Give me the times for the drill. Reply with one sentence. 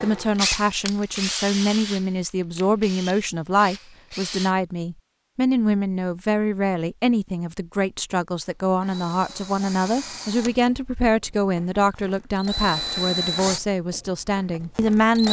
The drill can be heard from 0.0 to 4.5 s and from 8.8 to 15.2 s.